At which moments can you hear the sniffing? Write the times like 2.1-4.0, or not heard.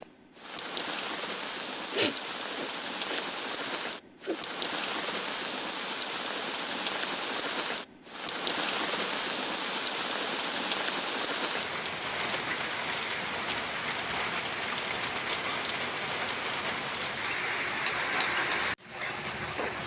1.9-4.4.